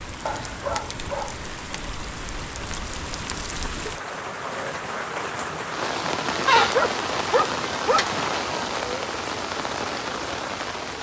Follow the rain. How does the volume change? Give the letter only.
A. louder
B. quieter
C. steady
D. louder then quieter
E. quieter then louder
A.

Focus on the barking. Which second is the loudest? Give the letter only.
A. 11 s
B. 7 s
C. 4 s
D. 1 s
B.